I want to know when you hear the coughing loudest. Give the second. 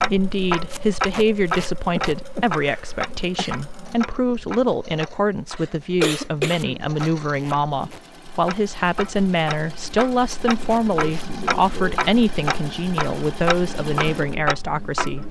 6 s.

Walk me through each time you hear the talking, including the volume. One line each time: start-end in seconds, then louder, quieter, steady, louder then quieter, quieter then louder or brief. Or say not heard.
0.0-15.2 steady.